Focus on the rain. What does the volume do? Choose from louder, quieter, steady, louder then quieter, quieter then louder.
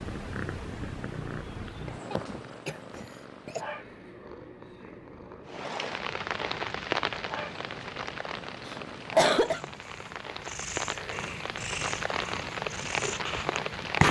quieter then louder.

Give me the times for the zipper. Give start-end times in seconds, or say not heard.
not heard.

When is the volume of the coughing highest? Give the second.
9 s.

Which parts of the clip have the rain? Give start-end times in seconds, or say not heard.
5.5-14.0.